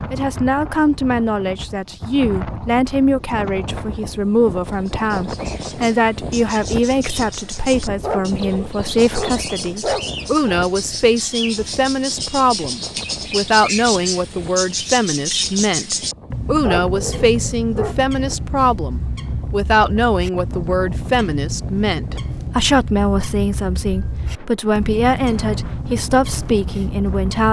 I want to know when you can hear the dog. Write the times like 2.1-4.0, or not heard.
8.0-10.6, 16.6-18.0.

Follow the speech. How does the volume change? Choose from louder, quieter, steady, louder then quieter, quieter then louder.
steady.